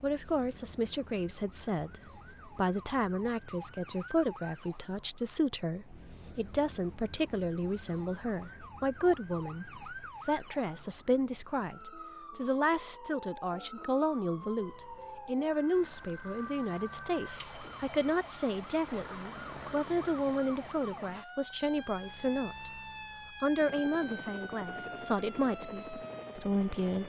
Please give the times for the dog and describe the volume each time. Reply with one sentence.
The dog can't be heard in this clip.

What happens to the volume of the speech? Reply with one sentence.
The volume of the speech stays about the same.